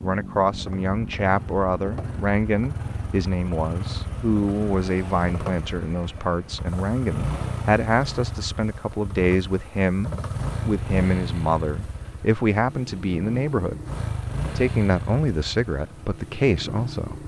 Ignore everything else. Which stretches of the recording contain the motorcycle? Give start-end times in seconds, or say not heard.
0.0-17.2.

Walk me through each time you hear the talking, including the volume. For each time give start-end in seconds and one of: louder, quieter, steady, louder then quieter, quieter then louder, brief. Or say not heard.
0.0-13.8 steady
14.6-17.2 brief.